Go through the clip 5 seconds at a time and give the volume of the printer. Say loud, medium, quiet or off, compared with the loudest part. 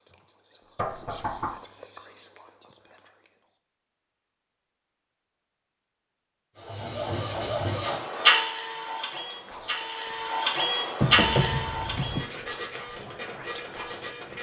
off, loud, loud.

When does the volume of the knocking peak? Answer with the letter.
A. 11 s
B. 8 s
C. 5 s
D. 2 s
A.